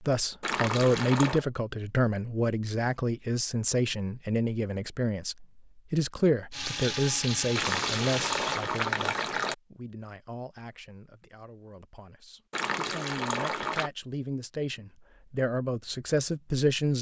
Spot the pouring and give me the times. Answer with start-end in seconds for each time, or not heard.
0.4-1.4, 7.5-9.6, 12.5-13.9.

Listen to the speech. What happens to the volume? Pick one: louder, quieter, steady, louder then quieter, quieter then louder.
quieter then louder.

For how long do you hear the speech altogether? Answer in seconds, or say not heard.
17 s.